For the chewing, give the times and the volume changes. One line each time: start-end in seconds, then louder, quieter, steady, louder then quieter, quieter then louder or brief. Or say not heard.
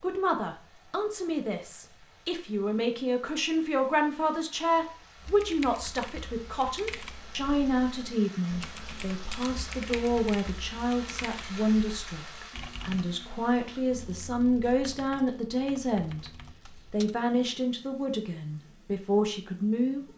not heard.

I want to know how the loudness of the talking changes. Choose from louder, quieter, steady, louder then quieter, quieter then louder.
steady.